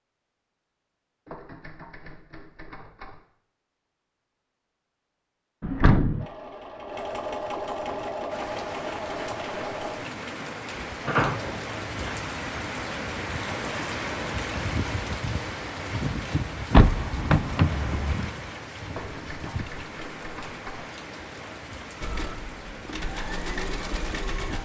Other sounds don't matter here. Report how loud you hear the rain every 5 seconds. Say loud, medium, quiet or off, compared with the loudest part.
off, medium, loud, loud, medium.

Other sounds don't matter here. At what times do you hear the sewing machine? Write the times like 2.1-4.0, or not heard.
6.2-10.6, 22.0-24.6.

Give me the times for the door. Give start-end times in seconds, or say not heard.
5.6-6.2, 11.1-12.3, 16.7-18.1.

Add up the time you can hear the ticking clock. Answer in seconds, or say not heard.
not heard.